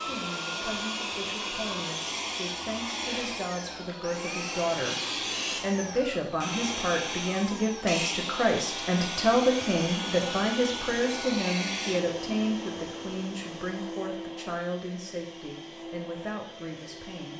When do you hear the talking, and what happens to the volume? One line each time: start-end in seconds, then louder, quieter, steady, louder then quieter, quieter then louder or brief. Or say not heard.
0.0-17.3 louder then quieter.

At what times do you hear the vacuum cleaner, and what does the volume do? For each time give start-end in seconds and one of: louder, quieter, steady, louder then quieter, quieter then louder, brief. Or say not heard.
0.0-17.3 quieter.